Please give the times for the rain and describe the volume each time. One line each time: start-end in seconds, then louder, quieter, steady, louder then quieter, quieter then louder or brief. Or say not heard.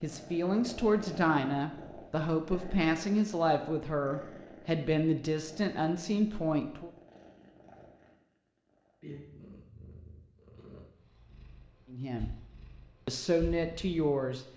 not heard.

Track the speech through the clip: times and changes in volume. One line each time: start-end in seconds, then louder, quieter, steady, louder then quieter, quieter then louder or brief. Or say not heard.
0.0-6.9 steady
11.9-12.3 brief
13.1-14.4 brief.